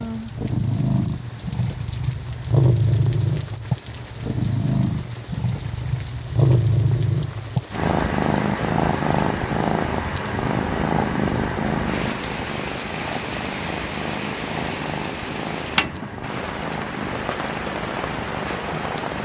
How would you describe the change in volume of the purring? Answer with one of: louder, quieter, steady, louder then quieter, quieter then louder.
quieter.